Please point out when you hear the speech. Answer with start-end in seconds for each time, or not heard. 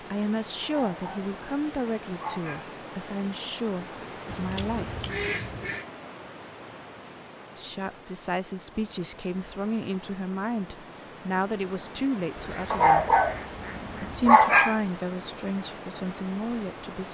0.0-5.0, 7.5-13.1, 14.0-17.0.